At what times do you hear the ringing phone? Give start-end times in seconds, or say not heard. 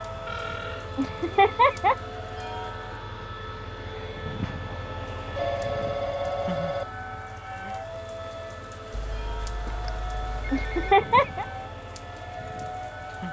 0.2-0.9, 5.3-6.8, 8.9-10.9.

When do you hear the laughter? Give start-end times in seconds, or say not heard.
0.9-1.9, 10.5-11.4.